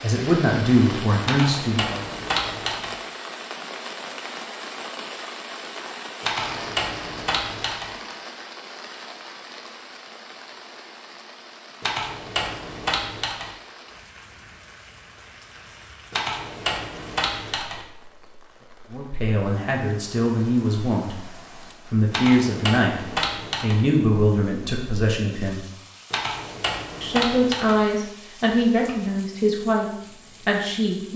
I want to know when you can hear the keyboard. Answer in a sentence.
The keyboard can be heard from 1.2 to 3.0 s, from 6.2 to 8.0 s, from 11.8 to 13.6 s, from 16.1 to 17.9 s, from 22.1 to 23.9 s and from 26.1 to 27.8 s.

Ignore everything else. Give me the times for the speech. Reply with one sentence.
You can hear the speech from 0.0 to 2.0 s, from 18.9 to 21.3 s, from 21.9 to 25.6 s and from 27.0 to 31.1 s.